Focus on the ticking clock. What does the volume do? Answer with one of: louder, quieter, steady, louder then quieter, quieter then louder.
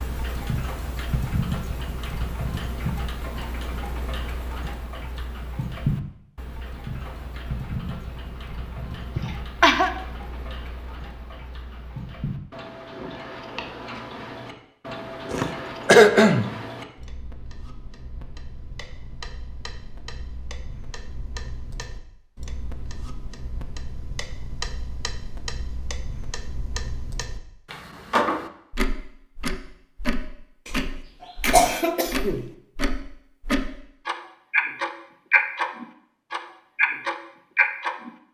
quieter then louder.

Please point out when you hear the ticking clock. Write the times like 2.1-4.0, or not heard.
0.0-38.1.